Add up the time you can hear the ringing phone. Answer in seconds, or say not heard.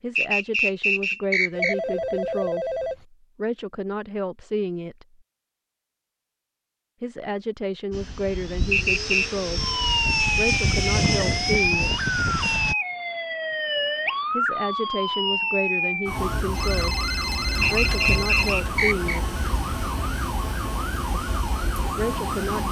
5 s.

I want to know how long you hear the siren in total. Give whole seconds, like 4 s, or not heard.
13 s.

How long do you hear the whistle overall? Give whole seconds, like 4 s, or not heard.
4 s.